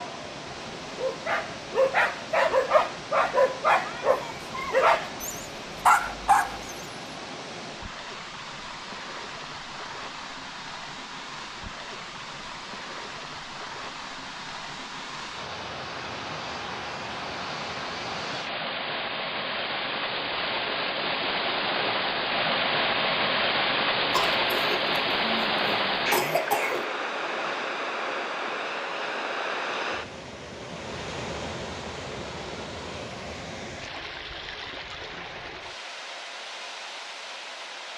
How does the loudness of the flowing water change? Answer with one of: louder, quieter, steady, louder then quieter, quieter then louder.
louder then quieter.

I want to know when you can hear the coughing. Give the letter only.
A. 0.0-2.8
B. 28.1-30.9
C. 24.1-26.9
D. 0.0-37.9
C.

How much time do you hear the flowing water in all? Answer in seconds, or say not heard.
38 s.